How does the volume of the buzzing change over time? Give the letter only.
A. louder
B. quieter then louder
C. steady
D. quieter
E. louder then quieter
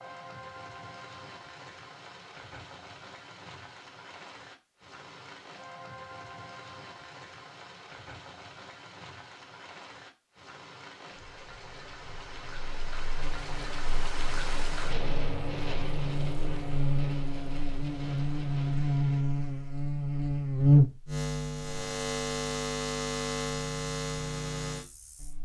E.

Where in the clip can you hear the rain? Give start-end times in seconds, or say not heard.
0.0-19.2.